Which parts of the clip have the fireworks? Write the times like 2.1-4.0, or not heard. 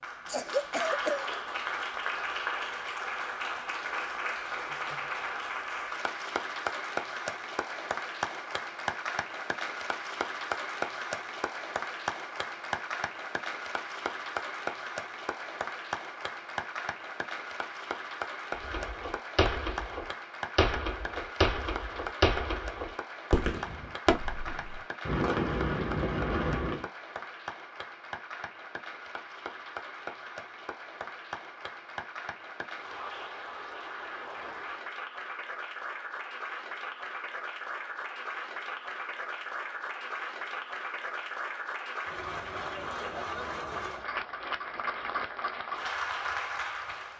18.6-26.9.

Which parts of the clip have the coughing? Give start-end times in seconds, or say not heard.
0.2-1.3.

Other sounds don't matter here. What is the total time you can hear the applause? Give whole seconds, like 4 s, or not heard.
47 s.